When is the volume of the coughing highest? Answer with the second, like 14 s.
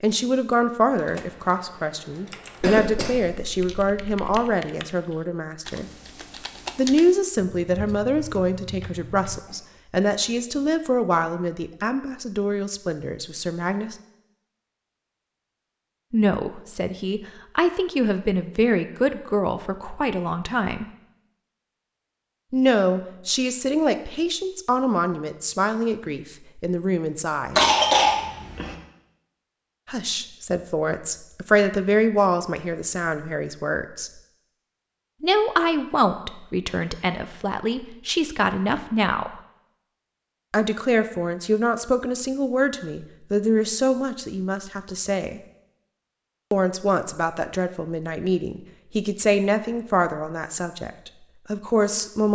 28 s.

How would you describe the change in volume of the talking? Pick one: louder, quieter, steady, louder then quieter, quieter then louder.
steady.